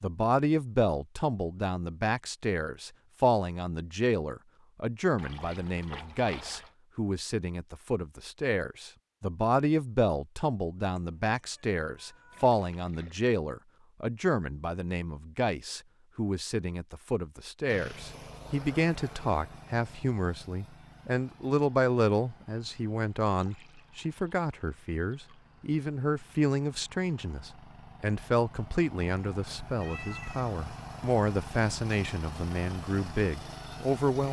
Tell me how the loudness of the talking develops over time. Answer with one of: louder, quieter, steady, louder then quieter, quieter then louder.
steady.